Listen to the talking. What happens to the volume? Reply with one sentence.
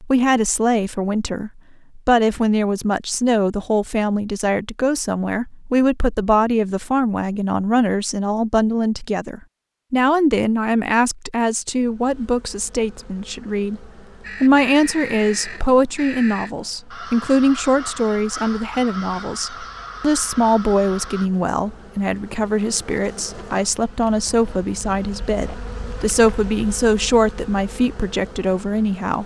The loudness of the talking stays about the same.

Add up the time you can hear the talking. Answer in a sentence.
You can hear the talking for 29 seconds altogether.